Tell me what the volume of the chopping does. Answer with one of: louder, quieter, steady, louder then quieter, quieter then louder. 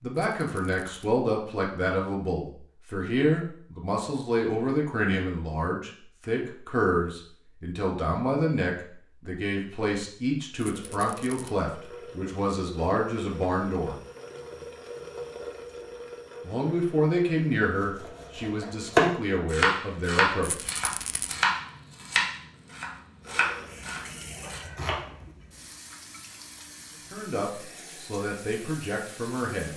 quieter.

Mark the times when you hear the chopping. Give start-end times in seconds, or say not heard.
17.8-25.3.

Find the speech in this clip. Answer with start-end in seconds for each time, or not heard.
0.0-13.9, 16.4-20.6, 27.1-29.7.